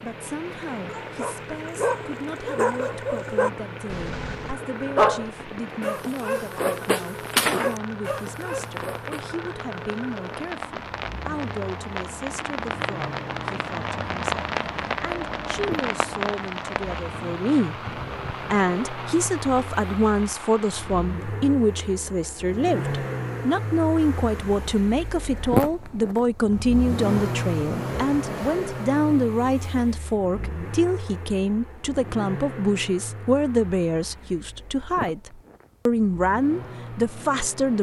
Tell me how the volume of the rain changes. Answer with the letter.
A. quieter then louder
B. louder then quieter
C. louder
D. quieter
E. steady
B.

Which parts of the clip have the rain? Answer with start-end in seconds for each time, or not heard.
0.0-21.4.